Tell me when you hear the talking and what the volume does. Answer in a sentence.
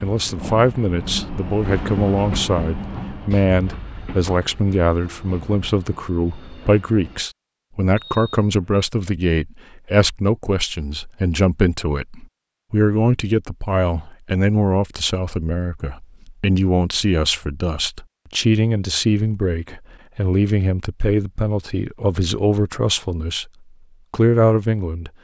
The talking can be heard from 0.0 to 23.5 s, at a steady volume; and briefly from 24.1 to 25.1 s.